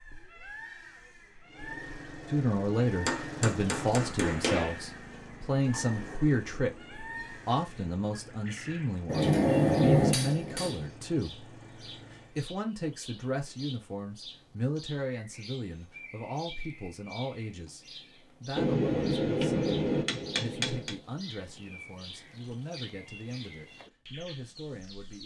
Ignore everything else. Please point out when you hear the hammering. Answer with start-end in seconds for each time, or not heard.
3.0-4.8, 9.1-10.9, 18.6-20.9.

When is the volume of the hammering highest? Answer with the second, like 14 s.
10 s.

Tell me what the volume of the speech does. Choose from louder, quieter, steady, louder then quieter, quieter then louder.
quieter.